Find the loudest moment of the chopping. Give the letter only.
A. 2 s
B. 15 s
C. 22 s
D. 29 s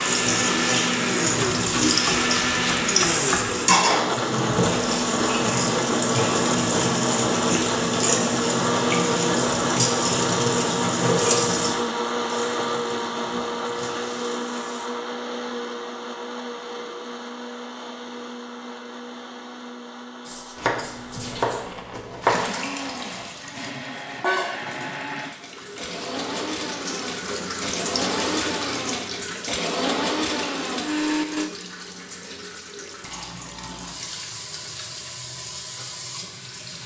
C.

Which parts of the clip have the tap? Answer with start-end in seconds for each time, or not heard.
0.0-14.9, 20.2-36.8.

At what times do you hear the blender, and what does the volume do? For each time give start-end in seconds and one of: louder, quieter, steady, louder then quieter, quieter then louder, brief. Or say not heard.
0.0-31.5 quieter then louder.